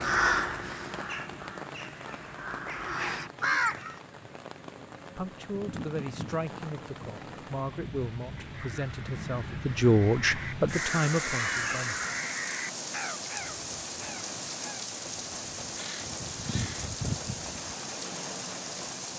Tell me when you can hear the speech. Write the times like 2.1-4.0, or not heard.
5.2-12.0.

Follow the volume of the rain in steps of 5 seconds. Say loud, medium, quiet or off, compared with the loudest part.
medium, medium, loud, loud.